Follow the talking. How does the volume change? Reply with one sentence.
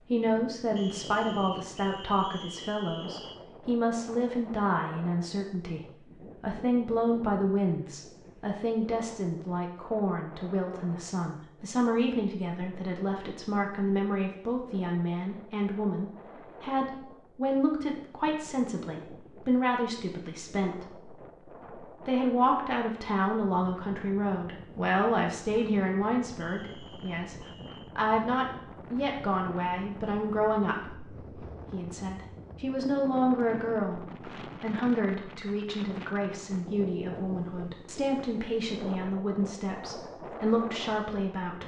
The volume of the talking stays about the same.